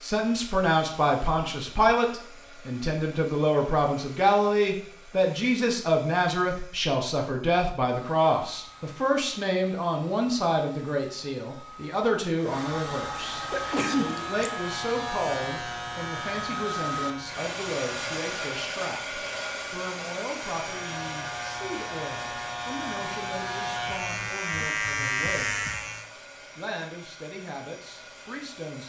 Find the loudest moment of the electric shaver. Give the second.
25 s.